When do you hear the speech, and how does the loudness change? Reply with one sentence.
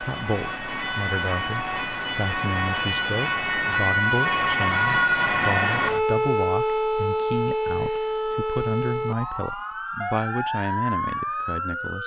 The speech can be heard from 0.0 to 12.0 s, at a steady volume.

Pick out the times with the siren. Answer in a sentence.
You can hear the siren from 0.0 to 12.0 s.